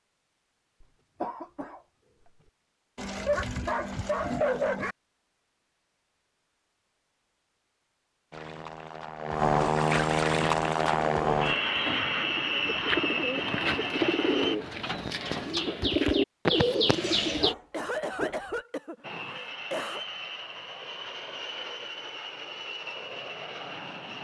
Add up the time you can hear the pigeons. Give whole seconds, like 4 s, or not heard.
7 s.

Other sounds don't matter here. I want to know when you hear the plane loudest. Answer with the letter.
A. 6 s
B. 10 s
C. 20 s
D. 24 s
B.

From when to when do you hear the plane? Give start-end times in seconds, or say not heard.
8.3-14.6, 19.0-24.2.